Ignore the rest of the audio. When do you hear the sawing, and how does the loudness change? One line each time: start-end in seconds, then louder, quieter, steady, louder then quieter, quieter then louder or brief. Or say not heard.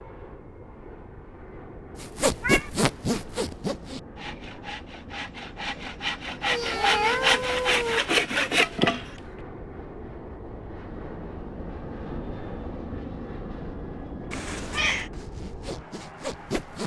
1.9-9.2 quieter then louder
15.1-16.8 brief.